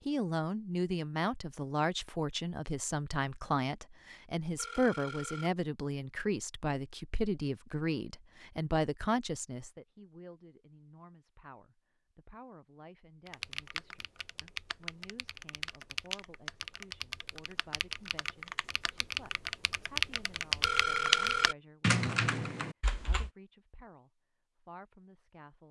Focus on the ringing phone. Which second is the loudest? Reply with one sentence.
The volume of the ringing phone peaks at 21 seconds.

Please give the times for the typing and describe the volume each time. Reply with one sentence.
You can hear the typing from 13.2 to 23.3 s, getting louder.